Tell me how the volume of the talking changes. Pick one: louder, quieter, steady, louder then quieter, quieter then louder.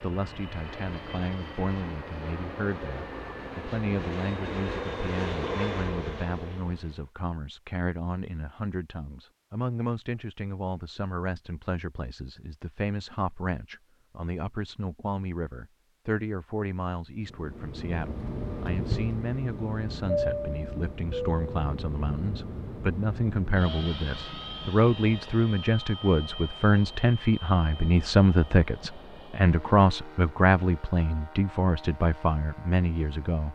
louder.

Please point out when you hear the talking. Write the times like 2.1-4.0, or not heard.
0.0-33.5.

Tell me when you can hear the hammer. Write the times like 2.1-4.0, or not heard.
not heard.